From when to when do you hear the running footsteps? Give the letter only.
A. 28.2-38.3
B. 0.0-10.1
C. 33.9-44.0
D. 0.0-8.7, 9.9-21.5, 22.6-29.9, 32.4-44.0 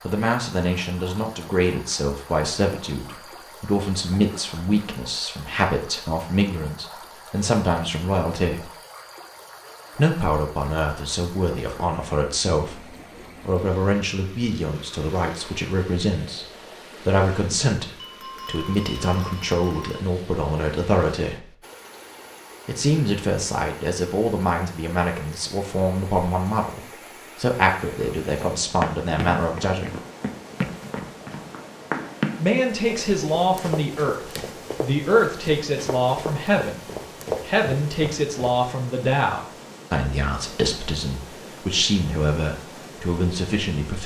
A.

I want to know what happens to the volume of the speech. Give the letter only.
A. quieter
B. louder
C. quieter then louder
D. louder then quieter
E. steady
E.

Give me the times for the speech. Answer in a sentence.
The speech can be heard from 0.0 to 8.7 s, from 9.9 to 21.5 s, from 22.6 to 29.9 s and from 32.4 to 44.0 s.